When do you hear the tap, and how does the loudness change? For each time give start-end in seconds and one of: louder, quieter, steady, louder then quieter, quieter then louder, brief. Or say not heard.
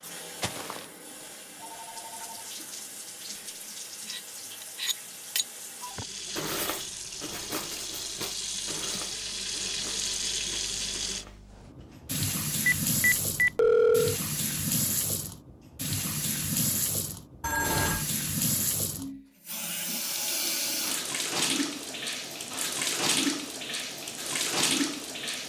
0.0-25.4 louder.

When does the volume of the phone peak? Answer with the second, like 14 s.
14 s.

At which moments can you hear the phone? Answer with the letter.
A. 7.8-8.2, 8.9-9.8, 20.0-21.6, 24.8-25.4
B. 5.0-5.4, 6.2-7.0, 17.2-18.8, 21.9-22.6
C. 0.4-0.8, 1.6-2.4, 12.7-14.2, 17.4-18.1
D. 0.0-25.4
C.